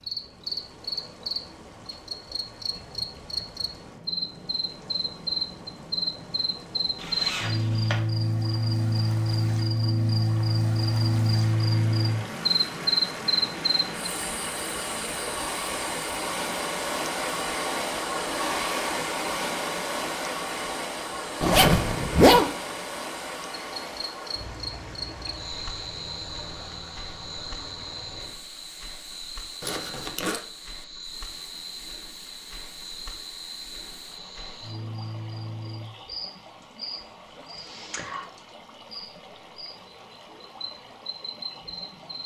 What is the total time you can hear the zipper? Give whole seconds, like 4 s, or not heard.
3 s.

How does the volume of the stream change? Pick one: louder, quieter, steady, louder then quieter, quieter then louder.
louder then quieter.